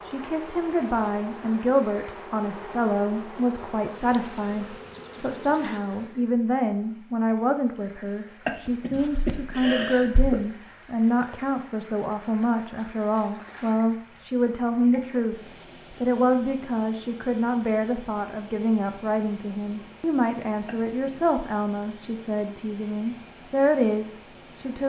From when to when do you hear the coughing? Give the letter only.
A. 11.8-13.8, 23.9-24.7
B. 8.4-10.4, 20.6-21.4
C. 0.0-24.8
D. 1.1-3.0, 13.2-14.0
B.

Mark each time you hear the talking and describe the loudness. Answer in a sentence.
You can hear the talking from 0.0 to 24.8 s, at a steady volume.